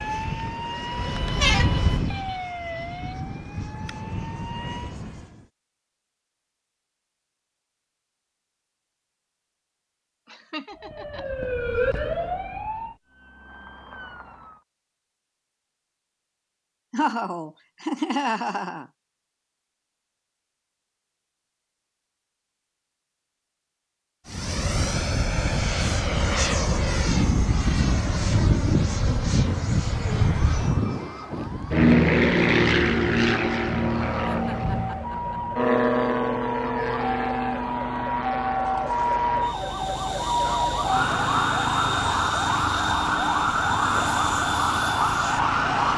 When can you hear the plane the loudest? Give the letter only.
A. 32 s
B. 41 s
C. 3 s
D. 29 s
A.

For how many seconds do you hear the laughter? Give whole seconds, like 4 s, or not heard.
4 s.